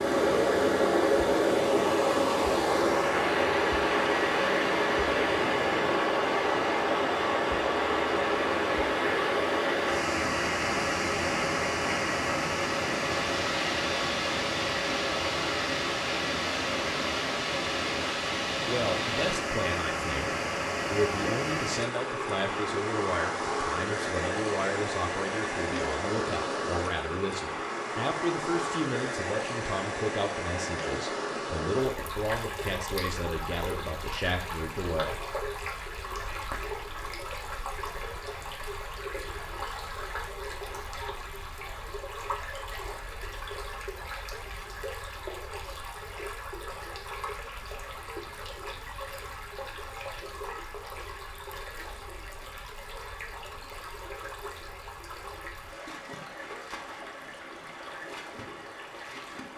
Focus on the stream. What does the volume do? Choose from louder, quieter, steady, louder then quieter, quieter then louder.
quieter.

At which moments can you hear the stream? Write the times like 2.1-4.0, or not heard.
0.0-59.5.